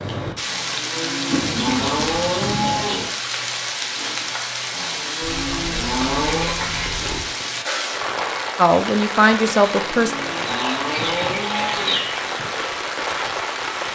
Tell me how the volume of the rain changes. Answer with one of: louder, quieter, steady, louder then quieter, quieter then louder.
steady.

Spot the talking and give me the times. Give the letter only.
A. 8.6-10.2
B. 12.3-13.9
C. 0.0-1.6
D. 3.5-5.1
A.